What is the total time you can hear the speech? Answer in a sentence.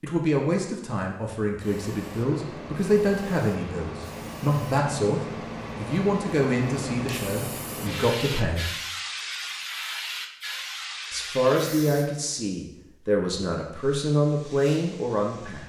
You can hear the speech for 13 seconds altogether.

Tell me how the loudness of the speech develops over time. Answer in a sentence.
The loudness of the speech stays about the same.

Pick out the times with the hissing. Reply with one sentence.
You can hear the hissing from 1.6 to 12.1 s and from 13.8 to 15.6 s.